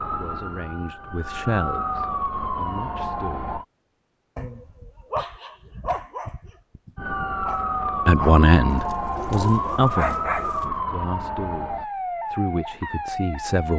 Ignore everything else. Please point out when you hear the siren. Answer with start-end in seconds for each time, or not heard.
0.0-3.6, 7.0-13.7.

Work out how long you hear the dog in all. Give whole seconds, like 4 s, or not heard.
6 s.